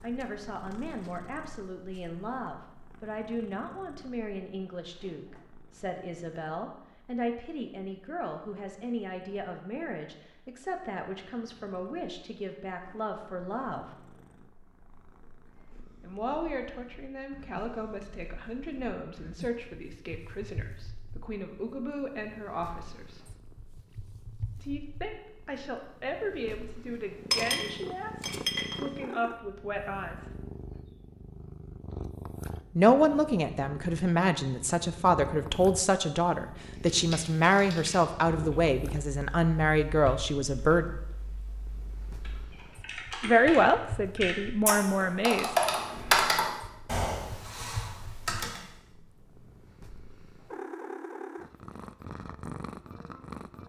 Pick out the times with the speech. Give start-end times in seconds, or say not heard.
0.0-13.8, 16.0-23.2, 24.6-30.3, 32.8-41.0, 43.2-45.5.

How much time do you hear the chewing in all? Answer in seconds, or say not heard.
not heard.